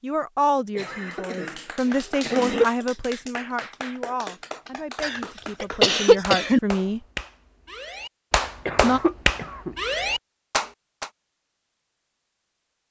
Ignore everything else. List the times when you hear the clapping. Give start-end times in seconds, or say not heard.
1.1-11.1.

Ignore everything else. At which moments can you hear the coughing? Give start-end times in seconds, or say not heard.
0.8-2.6, 5.0-6.6, 8.7-9.8.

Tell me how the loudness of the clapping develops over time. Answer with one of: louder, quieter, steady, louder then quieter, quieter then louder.
louder.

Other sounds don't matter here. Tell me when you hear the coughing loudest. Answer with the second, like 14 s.
6 s.